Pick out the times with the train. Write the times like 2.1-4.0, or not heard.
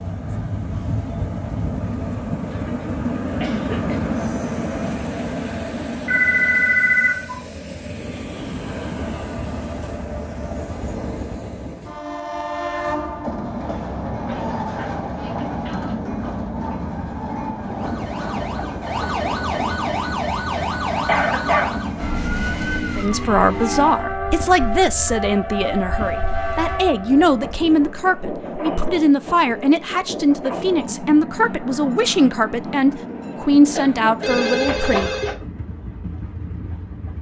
0.0-37.1.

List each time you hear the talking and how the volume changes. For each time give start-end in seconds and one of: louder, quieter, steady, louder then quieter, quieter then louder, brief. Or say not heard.
22.9-35.2 steady.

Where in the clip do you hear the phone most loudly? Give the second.
7 s.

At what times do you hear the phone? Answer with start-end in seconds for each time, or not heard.
6.0-7.4, 14.2-15.9, 34.2-35.4.